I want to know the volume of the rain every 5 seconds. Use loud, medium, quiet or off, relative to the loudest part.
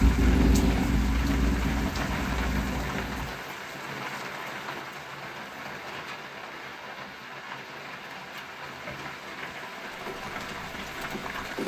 loud, medium, loud.